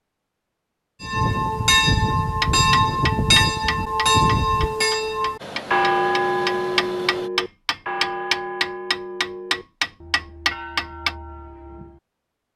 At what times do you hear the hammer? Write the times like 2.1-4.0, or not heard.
2.4-11.2.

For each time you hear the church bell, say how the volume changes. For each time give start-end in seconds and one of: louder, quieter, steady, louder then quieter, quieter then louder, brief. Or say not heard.
1.0-12.0 quieter.